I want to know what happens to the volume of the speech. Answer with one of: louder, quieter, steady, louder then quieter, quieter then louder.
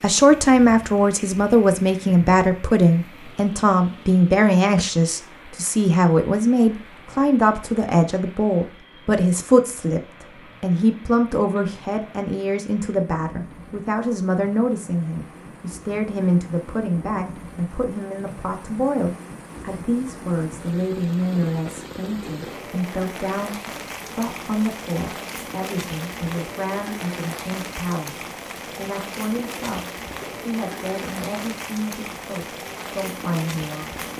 quieter.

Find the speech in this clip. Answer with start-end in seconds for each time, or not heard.
0.0-34.0.